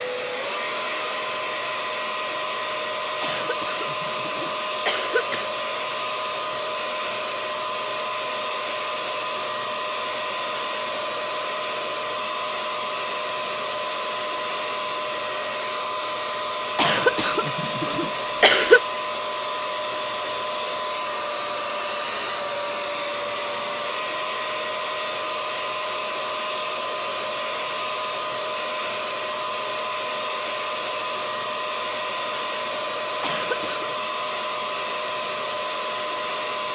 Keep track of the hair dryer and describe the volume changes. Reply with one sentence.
The loudness of the hair dryer stays about the same.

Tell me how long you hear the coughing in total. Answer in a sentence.
You can hear the coughing for 5 seconds altogether.